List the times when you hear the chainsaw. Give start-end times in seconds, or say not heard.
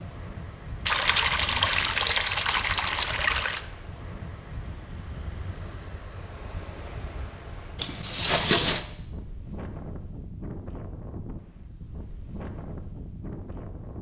not heard.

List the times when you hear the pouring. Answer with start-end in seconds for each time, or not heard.
0.8-3.6, 7.8-8.8.